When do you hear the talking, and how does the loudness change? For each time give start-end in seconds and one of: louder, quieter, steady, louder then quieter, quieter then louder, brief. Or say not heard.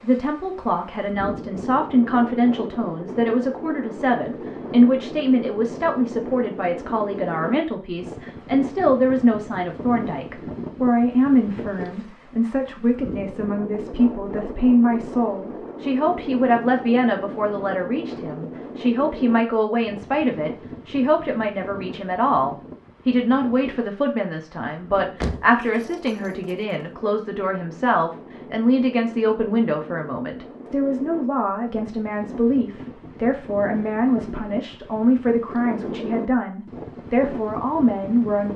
0.0-38.5 steady.